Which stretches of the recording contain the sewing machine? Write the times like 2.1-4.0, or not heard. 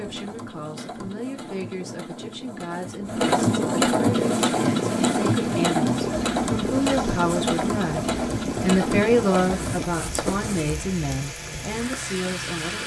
0.0-10.8.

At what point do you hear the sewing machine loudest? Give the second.
4 s.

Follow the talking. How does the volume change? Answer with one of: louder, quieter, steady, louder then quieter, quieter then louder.
louder then quieter.